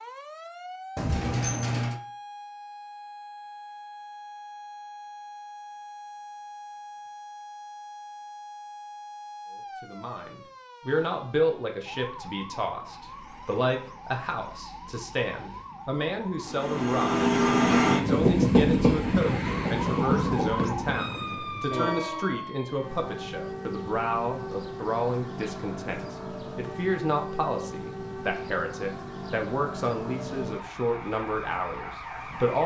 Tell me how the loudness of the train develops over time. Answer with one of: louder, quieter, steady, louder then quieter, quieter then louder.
quieter.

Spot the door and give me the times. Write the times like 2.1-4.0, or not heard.
0.9-2.0.